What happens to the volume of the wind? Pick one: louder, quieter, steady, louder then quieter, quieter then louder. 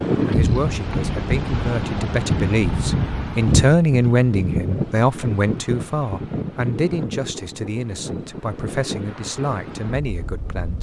quieter.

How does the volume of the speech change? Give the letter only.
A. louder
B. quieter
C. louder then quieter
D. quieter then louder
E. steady
C.